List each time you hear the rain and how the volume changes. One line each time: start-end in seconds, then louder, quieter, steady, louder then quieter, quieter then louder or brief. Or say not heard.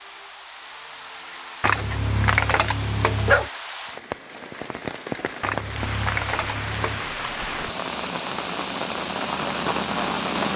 0.0-10.5 louder.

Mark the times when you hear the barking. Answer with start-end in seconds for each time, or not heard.
1.6-3.5, 5.4-7.0.